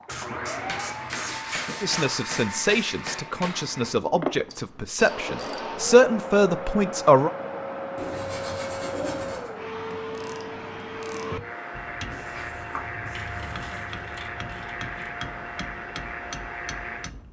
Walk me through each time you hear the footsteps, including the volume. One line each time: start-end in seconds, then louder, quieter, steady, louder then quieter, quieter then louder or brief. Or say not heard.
not heard.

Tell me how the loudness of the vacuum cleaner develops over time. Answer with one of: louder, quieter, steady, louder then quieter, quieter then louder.
steady.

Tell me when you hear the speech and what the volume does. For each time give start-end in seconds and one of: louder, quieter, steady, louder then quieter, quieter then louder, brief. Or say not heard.
1.8-7.3 louder.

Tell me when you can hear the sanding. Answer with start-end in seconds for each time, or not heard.
1.1-3.0, 8.0-9.5, 12.1-13.9.